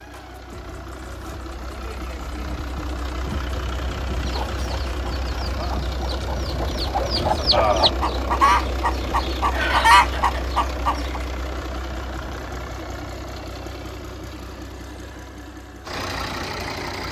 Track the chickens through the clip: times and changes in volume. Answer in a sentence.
You can hear the chickens from 4.2 to 11.2 s, getting louder.